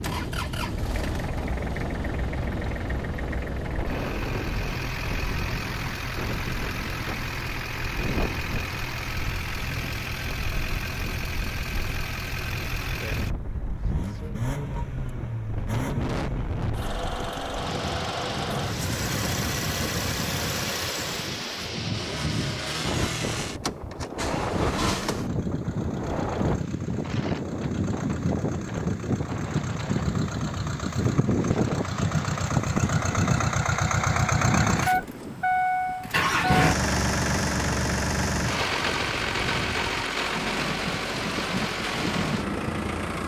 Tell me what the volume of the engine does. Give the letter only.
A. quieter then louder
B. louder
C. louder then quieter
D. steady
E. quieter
B.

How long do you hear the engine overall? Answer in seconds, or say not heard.
43 s.